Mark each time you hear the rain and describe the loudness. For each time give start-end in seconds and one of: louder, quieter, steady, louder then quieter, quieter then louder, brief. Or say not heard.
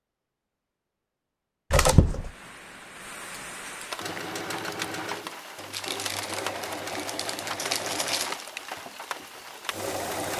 2.1-10.3 steady.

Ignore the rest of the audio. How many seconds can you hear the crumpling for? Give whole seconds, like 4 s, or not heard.
3 s.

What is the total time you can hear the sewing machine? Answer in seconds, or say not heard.
6 s.